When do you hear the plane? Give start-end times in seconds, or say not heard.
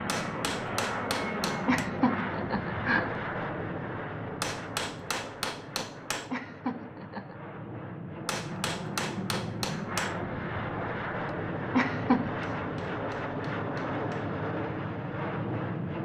0.0-15.9.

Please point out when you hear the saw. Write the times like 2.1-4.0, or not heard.
not heard.